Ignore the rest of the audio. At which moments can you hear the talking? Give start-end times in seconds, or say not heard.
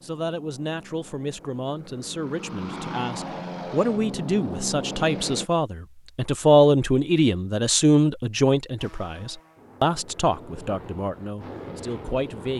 0.0-12.5.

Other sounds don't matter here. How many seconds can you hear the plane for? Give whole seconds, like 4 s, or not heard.
9 s.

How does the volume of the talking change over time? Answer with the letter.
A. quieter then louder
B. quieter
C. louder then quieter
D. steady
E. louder
C.